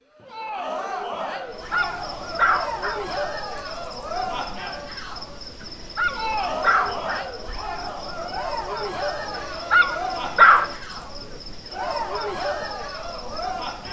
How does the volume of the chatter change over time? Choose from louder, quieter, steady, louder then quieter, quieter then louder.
steady.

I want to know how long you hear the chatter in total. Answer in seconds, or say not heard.
14 s.